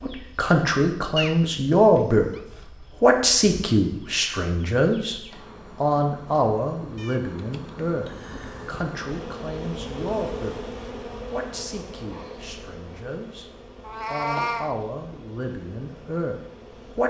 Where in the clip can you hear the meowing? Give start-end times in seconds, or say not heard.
1.1-2.4, 7.0-8.8, 13.8-14.7.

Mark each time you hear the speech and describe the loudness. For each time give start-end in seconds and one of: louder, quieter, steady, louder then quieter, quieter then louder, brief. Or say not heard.
0.0-2.3 brief
3.0-5.2 brief
5.8-10.6 quieter
11.3-13.5 brief
14.1-17.0 brief.